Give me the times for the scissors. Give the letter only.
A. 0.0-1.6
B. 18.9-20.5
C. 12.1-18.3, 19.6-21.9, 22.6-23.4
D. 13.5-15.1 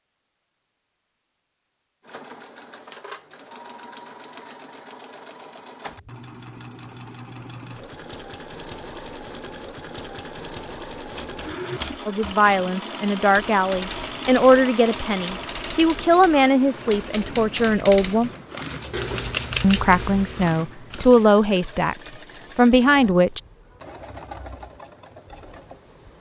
B.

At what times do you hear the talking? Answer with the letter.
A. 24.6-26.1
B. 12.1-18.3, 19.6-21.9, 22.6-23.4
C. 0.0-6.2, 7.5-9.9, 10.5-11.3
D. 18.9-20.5
B.